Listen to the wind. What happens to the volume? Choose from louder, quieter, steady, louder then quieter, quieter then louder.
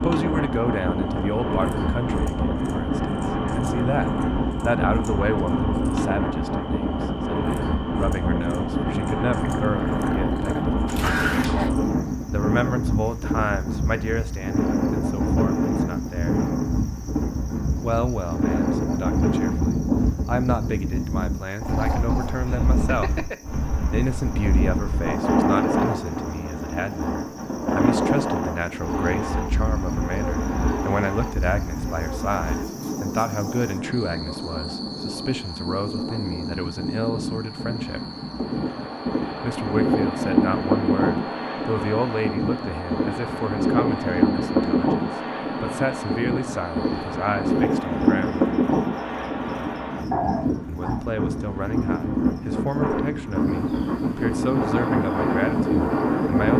steady.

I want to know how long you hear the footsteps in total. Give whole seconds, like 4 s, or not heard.
not heard.